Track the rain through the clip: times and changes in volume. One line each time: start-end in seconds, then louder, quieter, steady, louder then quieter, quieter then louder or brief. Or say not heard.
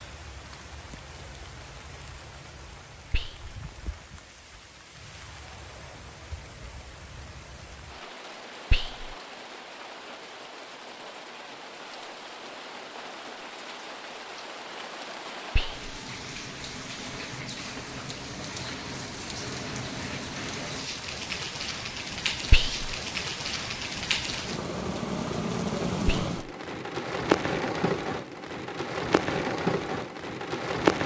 0.0-31.0 louder.